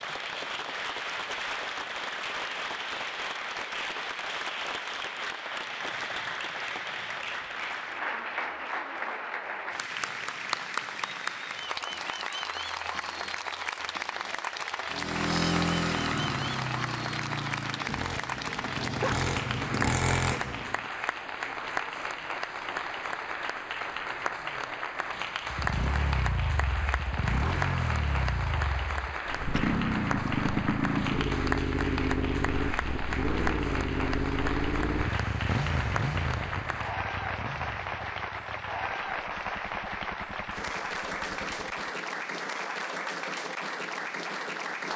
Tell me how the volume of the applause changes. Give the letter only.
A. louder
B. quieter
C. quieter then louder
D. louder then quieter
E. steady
E.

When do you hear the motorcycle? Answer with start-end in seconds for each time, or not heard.
14.8-20.9, 25.5-42.0.